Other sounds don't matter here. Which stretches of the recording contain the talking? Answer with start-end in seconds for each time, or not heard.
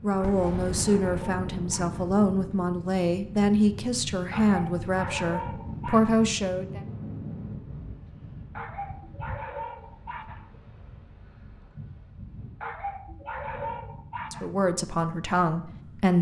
0.0-6.8, 14.3-16.1.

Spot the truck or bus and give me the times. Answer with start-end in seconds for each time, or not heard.
not heard.